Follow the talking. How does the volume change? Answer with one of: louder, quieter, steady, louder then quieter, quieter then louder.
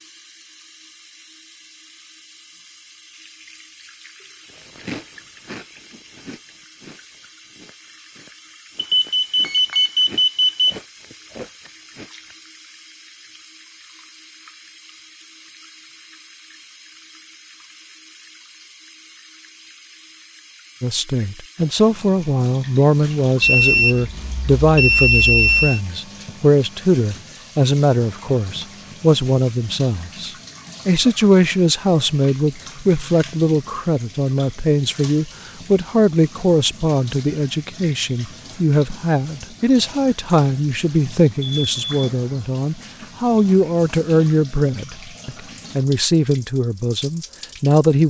steady.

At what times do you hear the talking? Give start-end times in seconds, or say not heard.
20.8-48.0.